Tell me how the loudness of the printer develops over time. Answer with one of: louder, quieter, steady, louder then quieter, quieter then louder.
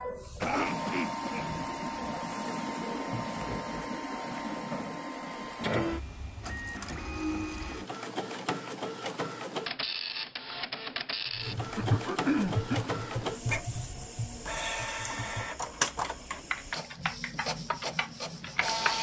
steady.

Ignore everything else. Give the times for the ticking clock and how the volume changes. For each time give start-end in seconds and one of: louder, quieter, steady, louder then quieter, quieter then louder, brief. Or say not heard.
not heard.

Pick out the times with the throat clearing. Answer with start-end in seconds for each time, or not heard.
0.4-1.4, 11.8-12.9.